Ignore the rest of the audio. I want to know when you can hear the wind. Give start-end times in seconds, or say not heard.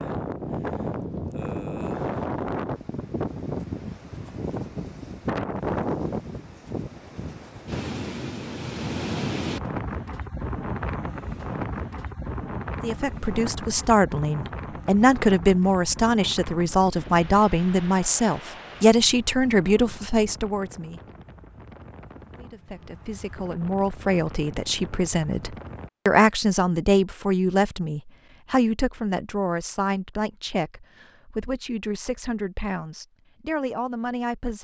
0.0-25.9.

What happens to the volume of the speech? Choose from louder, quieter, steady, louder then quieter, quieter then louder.
quieter.